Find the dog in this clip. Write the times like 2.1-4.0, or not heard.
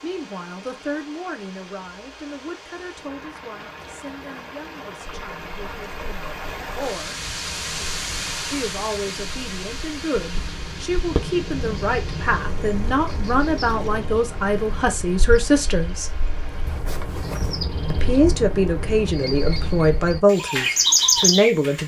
not heard.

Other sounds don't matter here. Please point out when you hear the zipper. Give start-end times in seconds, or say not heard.
3.8-4.5, 16.6-17.6.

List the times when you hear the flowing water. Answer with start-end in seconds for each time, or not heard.
0.0-16.9.